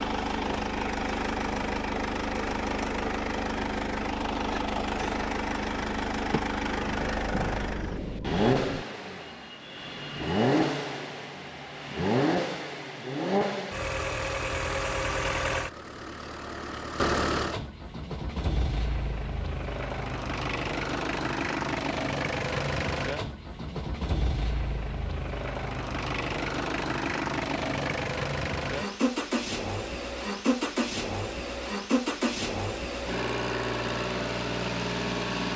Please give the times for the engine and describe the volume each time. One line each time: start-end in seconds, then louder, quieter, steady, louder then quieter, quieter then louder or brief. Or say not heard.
0.0-35.5 steady.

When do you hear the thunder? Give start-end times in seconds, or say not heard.
6.8-8.8.